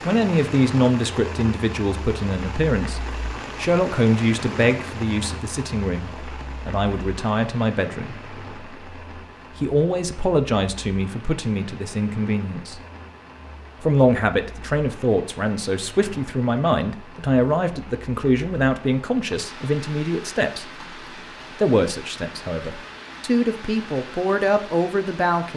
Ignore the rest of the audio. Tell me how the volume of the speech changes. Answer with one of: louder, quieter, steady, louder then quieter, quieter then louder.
steady.